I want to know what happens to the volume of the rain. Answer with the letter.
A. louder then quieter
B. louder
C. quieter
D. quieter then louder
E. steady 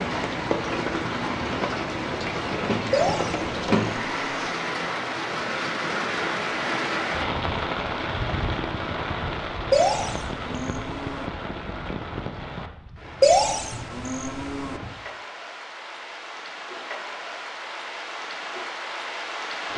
C.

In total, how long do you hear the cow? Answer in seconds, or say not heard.
5 s.